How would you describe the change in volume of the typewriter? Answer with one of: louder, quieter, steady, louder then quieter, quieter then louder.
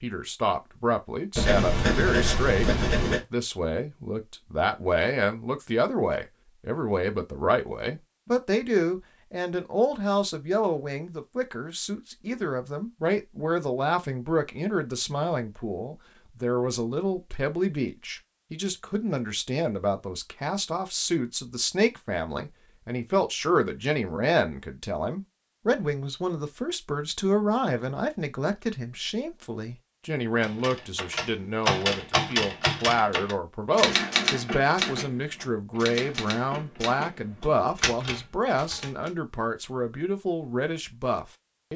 quieter.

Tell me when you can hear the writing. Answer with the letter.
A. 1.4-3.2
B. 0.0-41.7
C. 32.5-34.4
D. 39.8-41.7
A.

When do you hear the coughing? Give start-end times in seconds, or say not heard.
not heard.